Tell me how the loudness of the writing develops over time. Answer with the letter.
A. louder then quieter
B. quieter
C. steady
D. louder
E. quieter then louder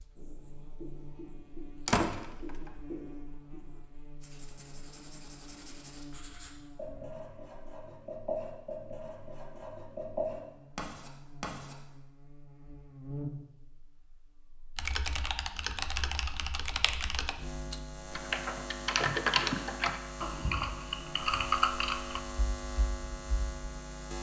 D.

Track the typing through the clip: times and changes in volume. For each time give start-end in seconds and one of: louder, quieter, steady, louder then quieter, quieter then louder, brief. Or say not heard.
14.8-23.8 louder then quieter.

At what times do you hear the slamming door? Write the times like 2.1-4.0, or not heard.
1.9-2.5.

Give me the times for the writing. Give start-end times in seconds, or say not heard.
0.1-11.8.